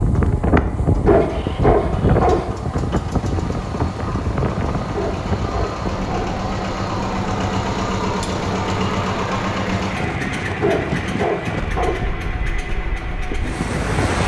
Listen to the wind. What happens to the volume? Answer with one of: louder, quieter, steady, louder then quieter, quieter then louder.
quieter.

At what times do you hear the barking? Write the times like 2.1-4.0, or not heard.
1.1-2.5, 5.0-6.3, 10.6-12.1.